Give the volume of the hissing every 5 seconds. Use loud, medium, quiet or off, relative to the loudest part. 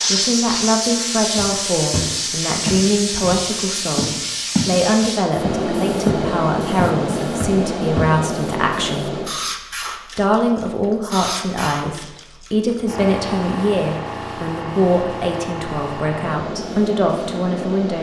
loud, loud, medium, medium.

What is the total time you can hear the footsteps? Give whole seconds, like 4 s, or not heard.
6 s.